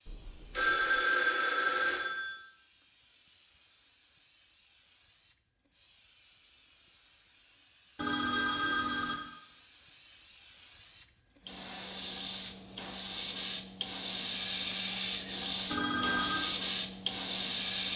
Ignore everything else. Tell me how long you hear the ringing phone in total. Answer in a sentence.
You can hear the ringing phone for 4 seconds altogether.